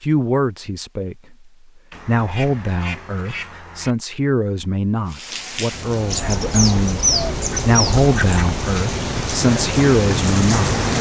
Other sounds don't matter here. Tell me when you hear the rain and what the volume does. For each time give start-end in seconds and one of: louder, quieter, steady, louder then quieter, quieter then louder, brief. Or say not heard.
5.0-10.9 louder.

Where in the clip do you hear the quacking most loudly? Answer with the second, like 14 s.
7 s.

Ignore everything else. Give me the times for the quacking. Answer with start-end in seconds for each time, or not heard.
1.9-4.0, 6.1-8.6.